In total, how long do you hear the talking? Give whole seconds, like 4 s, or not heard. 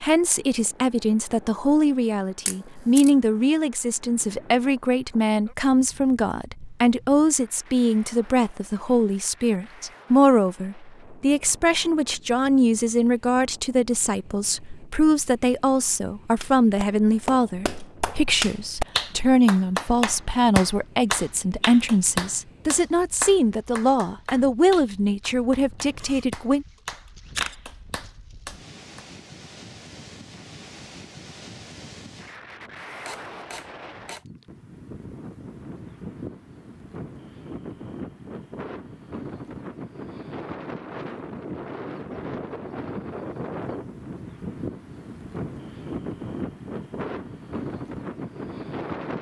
27 s.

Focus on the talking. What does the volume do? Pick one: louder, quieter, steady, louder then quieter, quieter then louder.
steady.